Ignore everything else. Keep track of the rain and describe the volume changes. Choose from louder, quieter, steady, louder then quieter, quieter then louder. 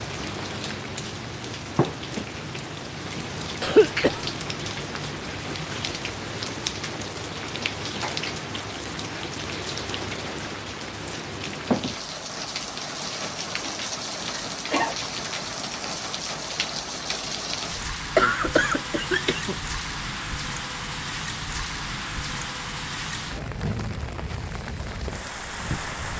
steady.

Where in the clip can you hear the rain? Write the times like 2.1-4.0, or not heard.
0.0-26.1.